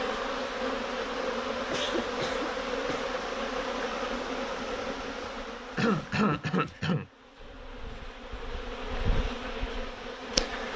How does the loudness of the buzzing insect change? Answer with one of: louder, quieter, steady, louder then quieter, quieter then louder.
quieter then louder.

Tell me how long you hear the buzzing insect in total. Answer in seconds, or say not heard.
11 s.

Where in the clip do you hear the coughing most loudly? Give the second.
6 s.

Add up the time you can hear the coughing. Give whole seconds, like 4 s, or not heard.
3 s.